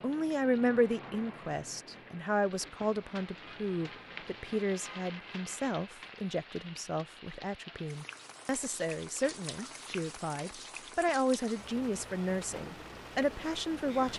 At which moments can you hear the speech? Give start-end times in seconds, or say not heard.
0.0-14.1.